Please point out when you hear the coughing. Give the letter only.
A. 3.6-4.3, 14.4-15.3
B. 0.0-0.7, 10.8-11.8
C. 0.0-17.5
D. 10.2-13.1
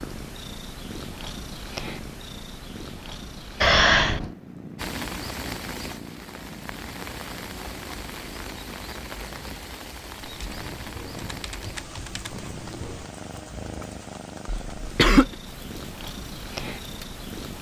A.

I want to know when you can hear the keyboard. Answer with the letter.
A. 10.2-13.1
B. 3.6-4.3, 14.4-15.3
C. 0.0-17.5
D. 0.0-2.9
A.